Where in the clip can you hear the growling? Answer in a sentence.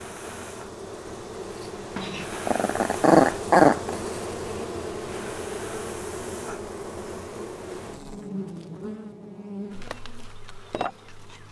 The growling can be heard from 1.9 to 4.0 s.